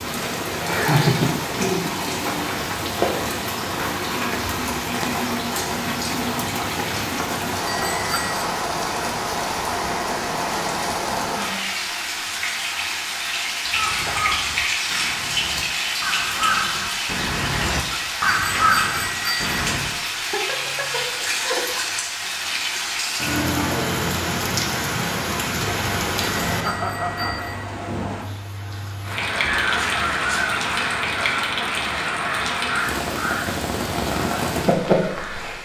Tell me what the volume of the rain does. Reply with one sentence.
The volume of the rain stays about the same.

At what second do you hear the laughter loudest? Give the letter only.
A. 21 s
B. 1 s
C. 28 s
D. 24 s
B.